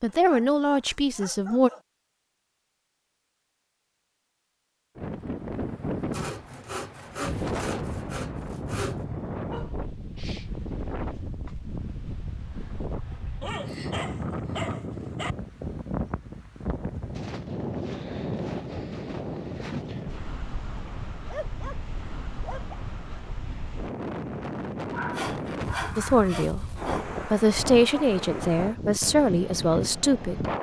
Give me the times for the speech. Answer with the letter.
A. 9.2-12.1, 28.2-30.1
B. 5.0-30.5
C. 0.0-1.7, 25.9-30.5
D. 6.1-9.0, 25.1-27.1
C.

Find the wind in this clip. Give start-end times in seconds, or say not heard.
5.0-30.5.